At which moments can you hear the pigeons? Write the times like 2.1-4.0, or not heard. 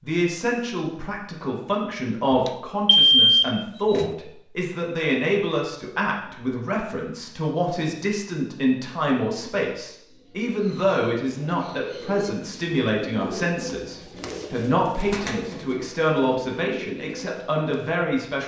10.1-17.9.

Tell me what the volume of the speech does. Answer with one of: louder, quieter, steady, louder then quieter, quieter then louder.
steady.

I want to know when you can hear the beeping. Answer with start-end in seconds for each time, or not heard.
2.3-4.1.